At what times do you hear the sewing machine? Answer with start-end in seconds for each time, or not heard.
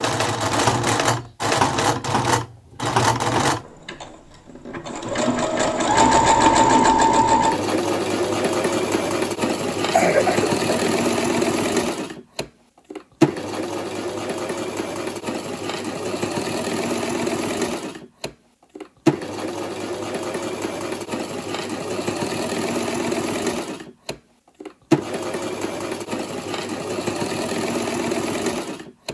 0.0-29.1.